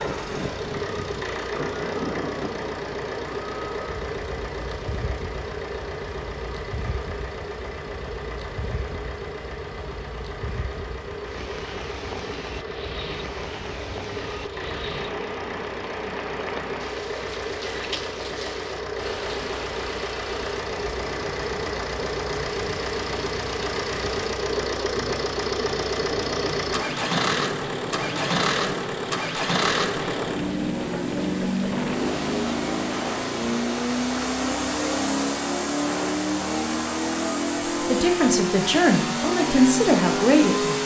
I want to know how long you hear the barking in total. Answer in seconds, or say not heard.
not heard.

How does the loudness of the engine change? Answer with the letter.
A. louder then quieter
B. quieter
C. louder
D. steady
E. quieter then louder
C.